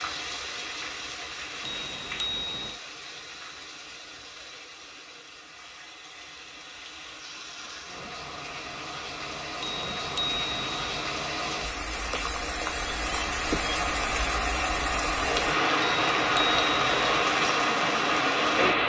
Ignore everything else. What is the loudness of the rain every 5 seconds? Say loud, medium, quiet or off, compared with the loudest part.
quiet, quiet, medium, loud.